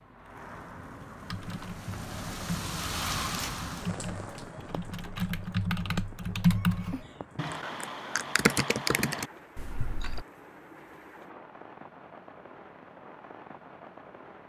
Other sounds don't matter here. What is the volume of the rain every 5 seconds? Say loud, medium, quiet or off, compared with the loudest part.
loud, medium, medium.